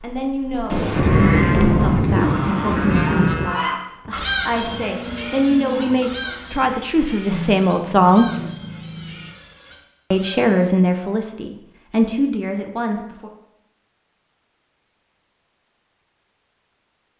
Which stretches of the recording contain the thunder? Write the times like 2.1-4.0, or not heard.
0.7-3.5.